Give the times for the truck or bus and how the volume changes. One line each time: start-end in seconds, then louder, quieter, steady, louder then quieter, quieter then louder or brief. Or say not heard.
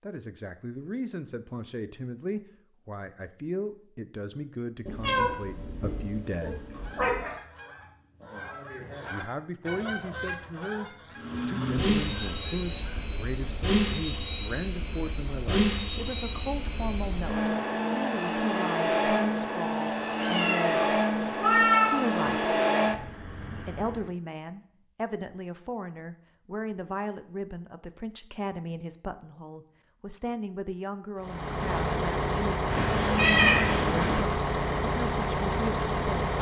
11.2-24.1 steady
31.2-36.3 steady.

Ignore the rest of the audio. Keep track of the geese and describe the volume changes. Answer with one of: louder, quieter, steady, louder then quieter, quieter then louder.
louder then quieter.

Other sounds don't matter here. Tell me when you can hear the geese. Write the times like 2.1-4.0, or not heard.
6.3-13.0.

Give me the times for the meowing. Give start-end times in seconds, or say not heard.
4.8-7.3, 20.1-21.9, 32.7-34.2.